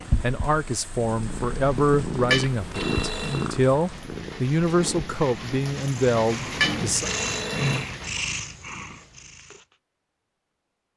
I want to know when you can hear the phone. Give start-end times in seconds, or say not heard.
2.3-3.5, 6.6-7.8.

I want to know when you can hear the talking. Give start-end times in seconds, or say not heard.
0.2-7.1.